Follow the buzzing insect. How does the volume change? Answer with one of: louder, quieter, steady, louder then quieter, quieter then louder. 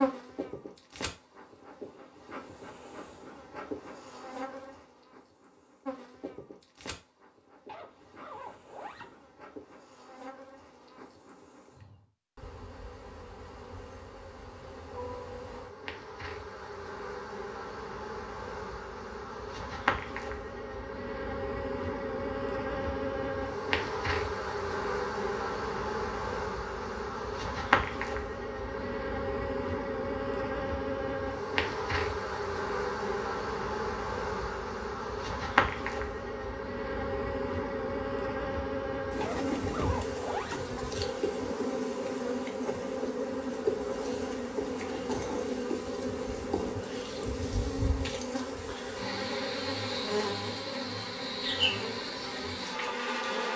louder.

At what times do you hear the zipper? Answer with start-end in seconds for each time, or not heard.
7.7-9.2, 39.2-40.6.